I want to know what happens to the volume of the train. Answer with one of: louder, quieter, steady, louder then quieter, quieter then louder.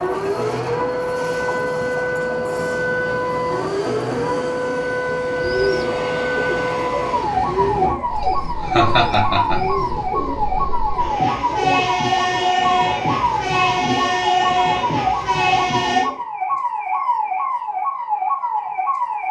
louder.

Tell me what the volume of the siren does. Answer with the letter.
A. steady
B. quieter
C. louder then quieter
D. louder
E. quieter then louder
A.